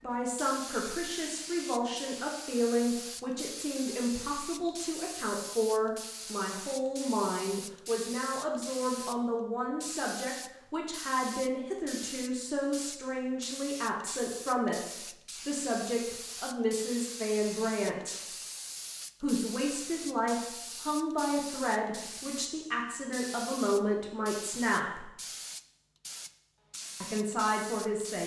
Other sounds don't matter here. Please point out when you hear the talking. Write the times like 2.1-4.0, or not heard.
0.0-18.2, 19.2-25.1, 27.0-28.2.